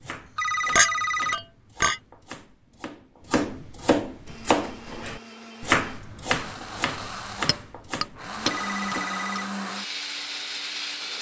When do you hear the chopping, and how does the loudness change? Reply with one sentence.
The chopping can be heard from 0.0 to 9.1 s, getting louder then quieter.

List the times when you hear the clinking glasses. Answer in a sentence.
You can hear the clinking glasses from 0.8 to 2.0 s and from 7.5 to 9.4 s.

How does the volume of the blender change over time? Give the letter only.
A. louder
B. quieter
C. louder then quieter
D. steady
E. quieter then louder
A.